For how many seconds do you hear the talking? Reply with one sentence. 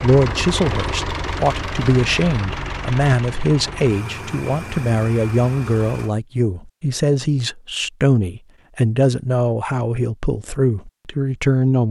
You can hear the talking for 12 seconds altogether.